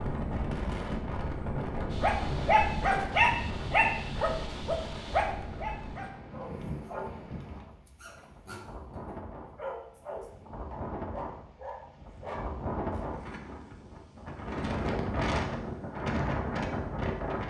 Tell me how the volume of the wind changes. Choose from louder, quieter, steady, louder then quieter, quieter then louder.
quieter then louder.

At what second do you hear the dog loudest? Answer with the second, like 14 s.
3 s.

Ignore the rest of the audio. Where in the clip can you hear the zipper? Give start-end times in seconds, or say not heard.
not heard.